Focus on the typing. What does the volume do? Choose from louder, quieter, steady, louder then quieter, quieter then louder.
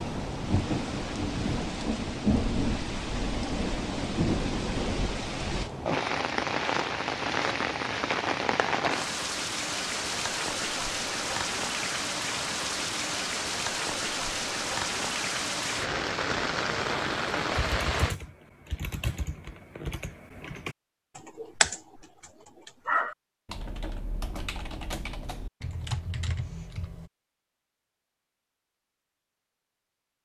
louder then quieter.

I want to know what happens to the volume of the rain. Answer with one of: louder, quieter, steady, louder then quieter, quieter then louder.
steady.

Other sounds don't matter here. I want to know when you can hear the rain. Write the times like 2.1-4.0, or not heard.
0.0-18.1.